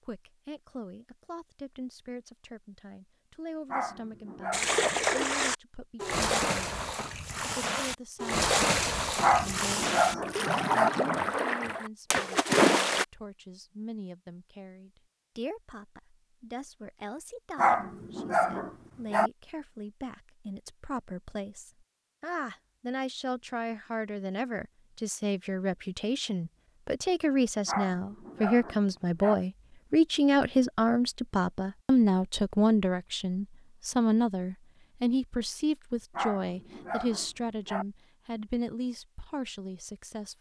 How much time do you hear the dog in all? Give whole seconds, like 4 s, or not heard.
8 s.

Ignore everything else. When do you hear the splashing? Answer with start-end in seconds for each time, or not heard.
4.5-13.1.